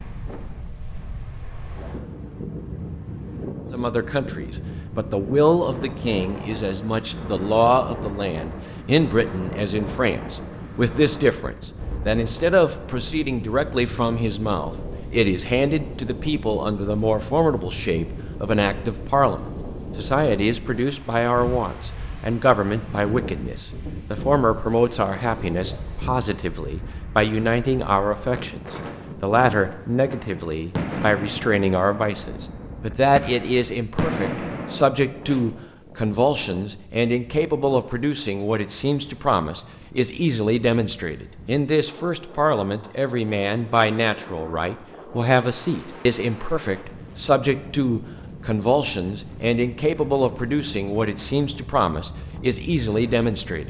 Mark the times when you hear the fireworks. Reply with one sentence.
You can hear the fireworks from 30.1 to 35.5 s.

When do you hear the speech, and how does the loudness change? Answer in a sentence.
You can hear the speech from 3.7 to 53.6 s, at a steady volume.